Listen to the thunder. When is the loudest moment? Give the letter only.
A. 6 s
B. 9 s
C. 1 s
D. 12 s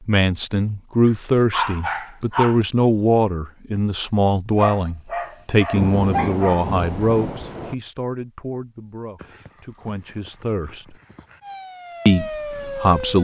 A.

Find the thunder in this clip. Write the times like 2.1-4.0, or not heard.
5.8-7.8.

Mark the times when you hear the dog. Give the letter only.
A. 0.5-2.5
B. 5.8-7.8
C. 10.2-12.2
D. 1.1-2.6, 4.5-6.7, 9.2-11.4
D.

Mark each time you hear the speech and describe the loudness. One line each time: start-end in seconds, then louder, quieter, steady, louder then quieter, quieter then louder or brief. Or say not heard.
0.1-10.9 quieter
12.1-13.1 brief.